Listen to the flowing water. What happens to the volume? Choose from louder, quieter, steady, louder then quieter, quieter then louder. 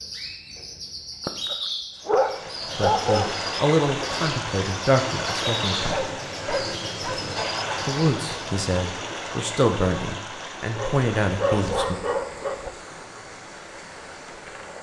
quieter.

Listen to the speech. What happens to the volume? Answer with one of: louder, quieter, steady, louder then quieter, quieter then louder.
steady.